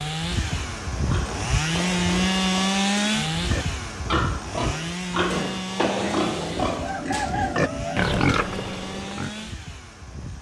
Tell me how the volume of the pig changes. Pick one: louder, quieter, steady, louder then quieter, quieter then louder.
louder.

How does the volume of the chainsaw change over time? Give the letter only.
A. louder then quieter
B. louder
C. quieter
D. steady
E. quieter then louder
C.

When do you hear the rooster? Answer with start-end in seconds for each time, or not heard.
6.6-8.2.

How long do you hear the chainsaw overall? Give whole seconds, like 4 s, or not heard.
10 s.